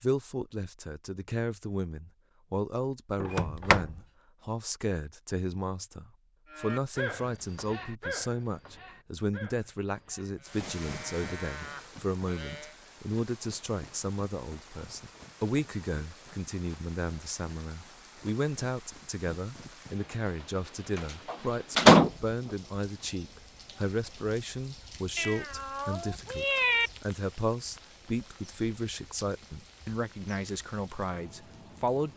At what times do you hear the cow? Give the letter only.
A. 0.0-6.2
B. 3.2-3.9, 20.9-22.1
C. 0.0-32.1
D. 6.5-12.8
D.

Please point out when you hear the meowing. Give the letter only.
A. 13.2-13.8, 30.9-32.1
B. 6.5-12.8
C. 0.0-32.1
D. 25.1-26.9
D.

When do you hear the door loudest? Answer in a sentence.
The volume of the door peaks at 22 seconds.